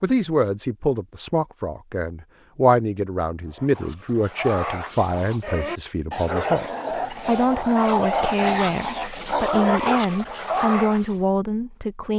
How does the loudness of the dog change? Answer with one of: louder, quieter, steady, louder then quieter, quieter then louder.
louder.